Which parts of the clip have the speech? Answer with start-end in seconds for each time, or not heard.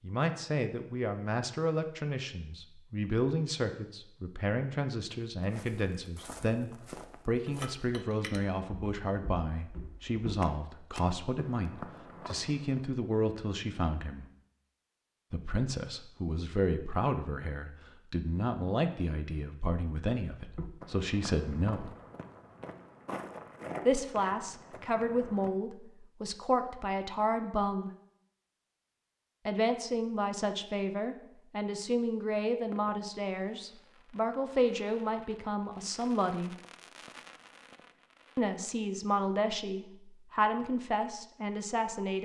0.0-14.2, 15.3-21.9, 23.9-27.9, 29.4-36.5, 38.4-42.2.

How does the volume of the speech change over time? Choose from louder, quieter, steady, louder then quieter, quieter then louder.
steady.